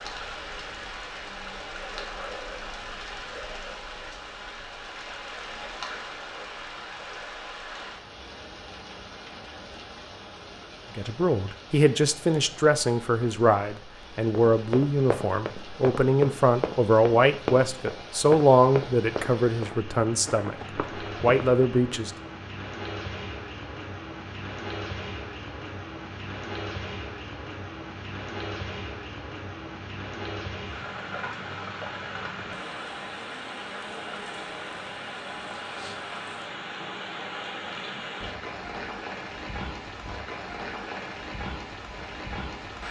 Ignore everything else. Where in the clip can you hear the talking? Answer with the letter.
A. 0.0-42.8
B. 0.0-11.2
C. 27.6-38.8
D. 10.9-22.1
D.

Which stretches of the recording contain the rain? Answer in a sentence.
The rain can be heard from 0.0 to 42.8 s.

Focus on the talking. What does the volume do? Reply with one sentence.
The loudness of the talking stays about the same.